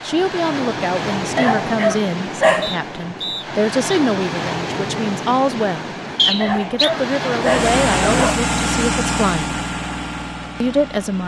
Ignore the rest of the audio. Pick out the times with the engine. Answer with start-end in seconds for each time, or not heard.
7.4-11.2.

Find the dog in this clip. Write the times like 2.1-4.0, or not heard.
1.4-2.8, 6.4-8.4.